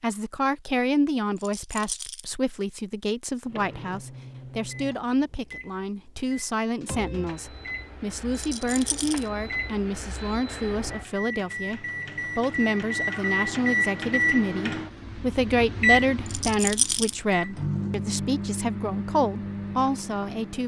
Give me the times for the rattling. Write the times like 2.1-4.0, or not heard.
1.4-2.2, 8.3-9.2, 16.2-17.1.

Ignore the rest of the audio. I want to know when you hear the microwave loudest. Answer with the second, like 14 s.
14 s.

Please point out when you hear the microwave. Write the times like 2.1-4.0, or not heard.
3.5-20.6.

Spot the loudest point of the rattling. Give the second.
17 s.